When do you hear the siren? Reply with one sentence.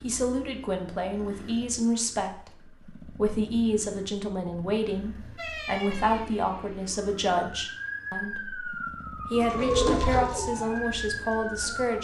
You can hear the siren from 5.3 to 11.9 s.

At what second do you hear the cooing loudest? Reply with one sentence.
The volume of the cooing peaks at 10 seconds.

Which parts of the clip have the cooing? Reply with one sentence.
The cooing can be heard from 9.3 to 11.9 s.